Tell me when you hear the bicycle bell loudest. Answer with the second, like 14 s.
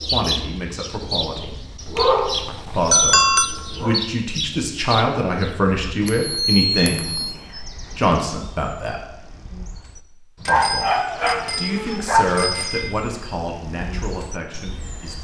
3 s.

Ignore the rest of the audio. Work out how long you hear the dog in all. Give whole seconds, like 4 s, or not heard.
4 s.